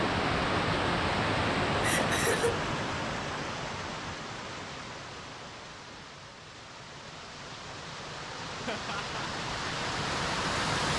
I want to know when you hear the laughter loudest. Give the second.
2 s.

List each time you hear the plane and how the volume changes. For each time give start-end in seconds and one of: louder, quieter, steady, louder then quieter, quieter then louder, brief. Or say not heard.
not heard.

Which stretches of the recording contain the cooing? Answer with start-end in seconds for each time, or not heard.
not heard.